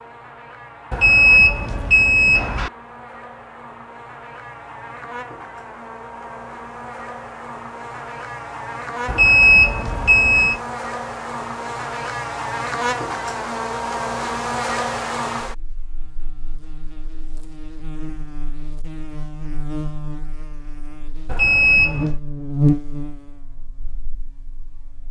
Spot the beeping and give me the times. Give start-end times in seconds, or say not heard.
0.9-2.7, 9.1-10.6, 21.2-22.1.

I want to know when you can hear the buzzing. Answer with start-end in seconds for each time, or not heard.
0.0-25.0.